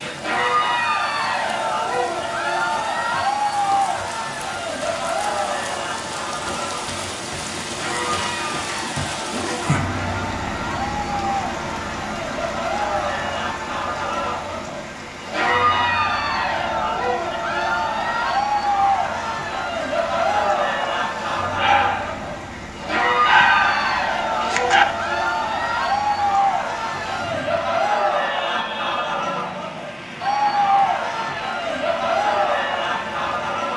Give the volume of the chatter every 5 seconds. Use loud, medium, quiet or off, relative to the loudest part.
loud, medium, medium, loud, loud, loud, loud.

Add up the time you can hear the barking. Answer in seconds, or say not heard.
2 s.